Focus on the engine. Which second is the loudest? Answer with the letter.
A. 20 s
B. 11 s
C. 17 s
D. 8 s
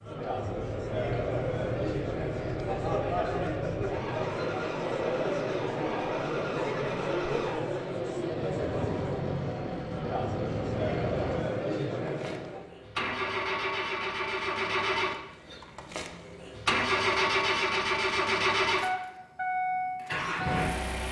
C.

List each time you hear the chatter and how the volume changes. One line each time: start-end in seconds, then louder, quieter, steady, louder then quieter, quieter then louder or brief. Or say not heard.
0.0-12.7 steady.